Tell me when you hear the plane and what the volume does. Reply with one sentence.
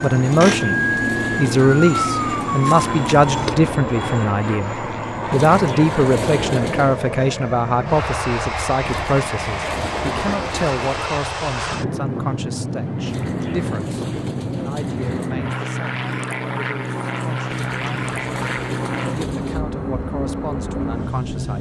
You can hear the plane from 0.0 to 21.5 s, at a steady volume.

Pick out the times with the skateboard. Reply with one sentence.
The skateboard can't be heard in this clip.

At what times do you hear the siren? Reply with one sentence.
The siren can be heard from 0.0 to 3.5 s.